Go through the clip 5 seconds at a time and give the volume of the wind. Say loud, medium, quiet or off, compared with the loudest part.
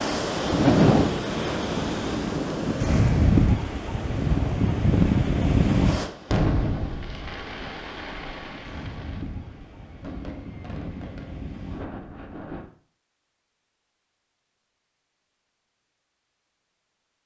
loud, medium, quiet, off.